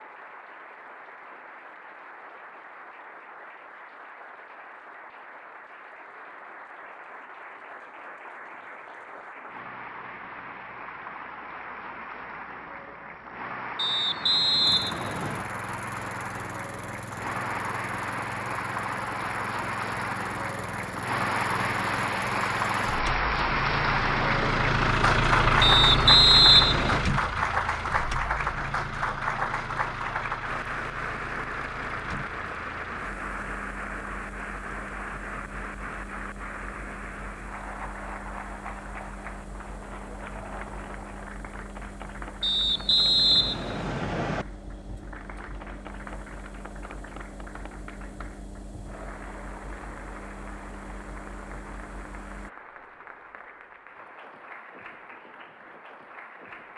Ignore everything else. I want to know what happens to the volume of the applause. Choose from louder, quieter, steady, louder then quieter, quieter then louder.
louder then quieter.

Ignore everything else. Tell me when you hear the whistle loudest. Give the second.
26 s.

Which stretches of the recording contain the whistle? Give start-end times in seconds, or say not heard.
13.8-15.4, 25.6-27.1, 42.4-44.5.